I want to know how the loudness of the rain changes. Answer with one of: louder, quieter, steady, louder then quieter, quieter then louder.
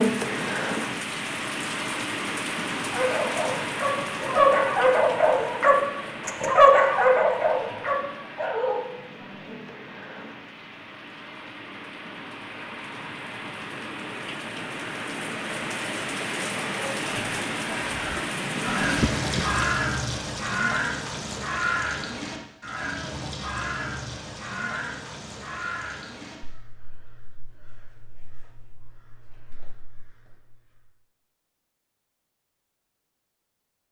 quieter then louder.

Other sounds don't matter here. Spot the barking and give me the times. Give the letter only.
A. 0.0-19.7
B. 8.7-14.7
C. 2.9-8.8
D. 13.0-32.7
C.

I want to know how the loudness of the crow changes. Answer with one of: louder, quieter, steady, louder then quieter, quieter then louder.
quieter.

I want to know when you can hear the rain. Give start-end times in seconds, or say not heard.
0.0-19.7.